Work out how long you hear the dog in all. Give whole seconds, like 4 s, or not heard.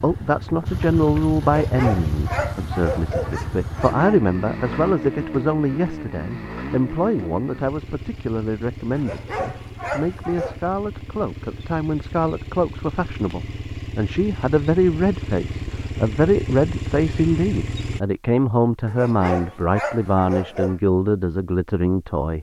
6 s.